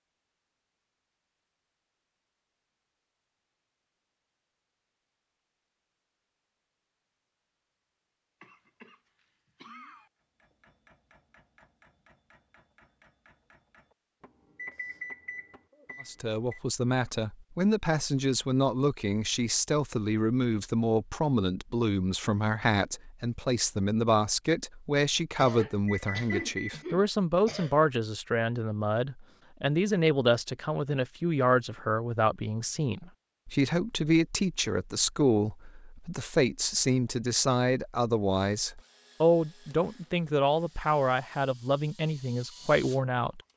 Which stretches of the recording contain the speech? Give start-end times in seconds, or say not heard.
16.1-43.4.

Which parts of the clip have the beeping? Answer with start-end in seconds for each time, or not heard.
14.6-16.6, 25.9-26.9.